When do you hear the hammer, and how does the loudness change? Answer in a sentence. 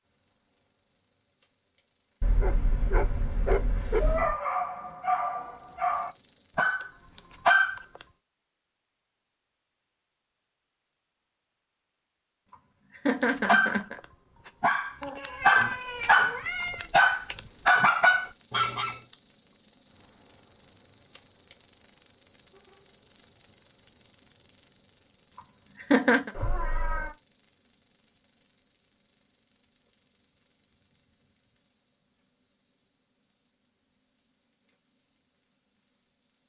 You can't hear the hammer here.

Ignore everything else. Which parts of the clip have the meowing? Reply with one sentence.
The meowing can be heard from 2.2 to 4.3 s, from 15.0 to 16.9 s and from 26.3 to 27.1 s.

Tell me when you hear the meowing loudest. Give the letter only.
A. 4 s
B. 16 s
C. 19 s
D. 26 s
A.